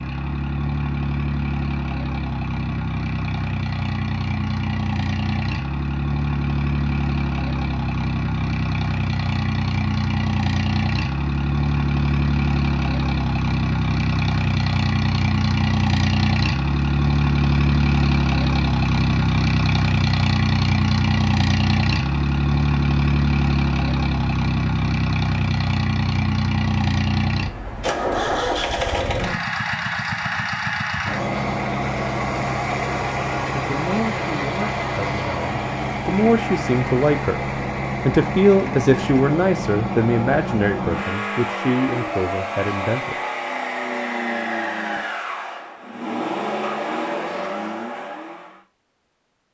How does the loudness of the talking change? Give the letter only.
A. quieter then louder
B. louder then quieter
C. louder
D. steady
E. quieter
B.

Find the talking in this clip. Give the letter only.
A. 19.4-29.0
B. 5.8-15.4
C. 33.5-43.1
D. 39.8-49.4
C.